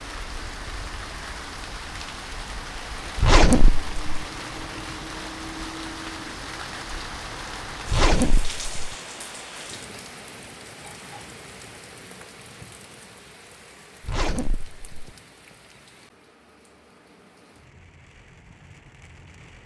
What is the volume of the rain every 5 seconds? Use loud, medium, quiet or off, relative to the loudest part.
loud, loud, medium, quiet.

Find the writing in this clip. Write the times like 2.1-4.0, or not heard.
not heard.